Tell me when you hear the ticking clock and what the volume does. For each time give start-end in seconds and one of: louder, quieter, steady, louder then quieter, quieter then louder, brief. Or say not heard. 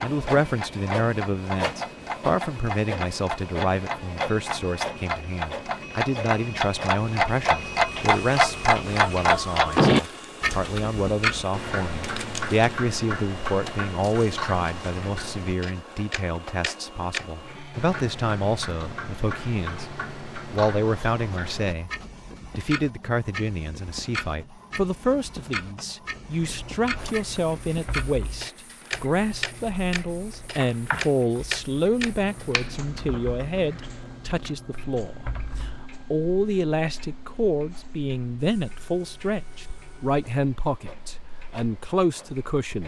0.0-42.8 quieter.